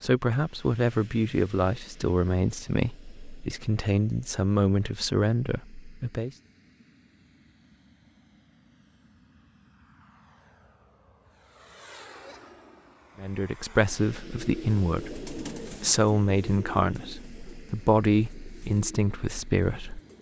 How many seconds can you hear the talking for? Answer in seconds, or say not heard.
13 s.